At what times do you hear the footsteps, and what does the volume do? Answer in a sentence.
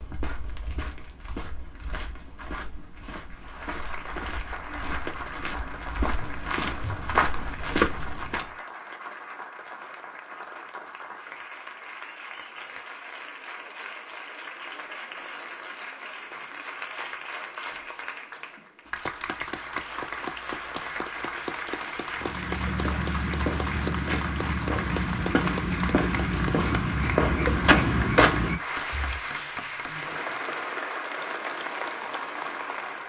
You can hear the footsteps from 0.0 to 8.6 s, getting louder; and from 22.1 to 29.1 s, getting louder.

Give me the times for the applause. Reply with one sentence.
You can hear the applause from 3.4 to 33.0 s.